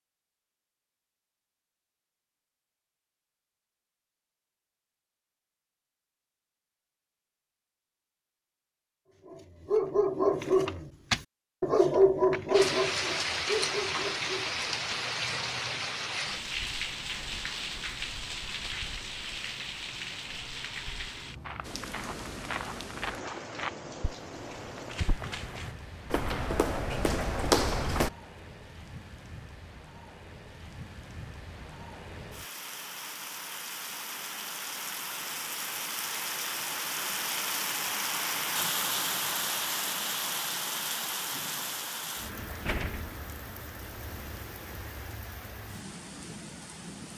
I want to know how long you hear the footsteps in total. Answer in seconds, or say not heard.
7 s.